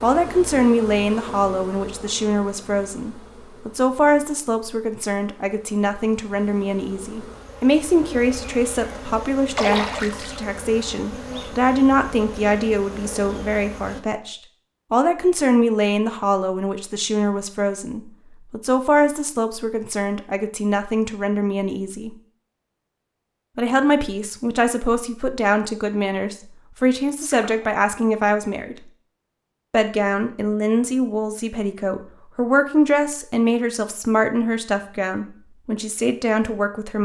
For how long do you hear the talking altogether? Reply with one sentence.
The talking can be heard for 35 seconds in total.